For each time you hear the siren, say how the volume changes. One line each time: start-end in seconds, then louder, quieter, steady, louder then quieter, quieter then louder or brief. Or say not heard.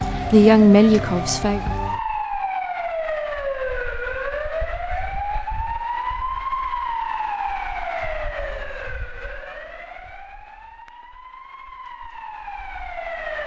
0.0-13.4 quieter.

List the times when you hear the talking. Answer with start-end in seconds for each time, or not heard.
0.3-1.6.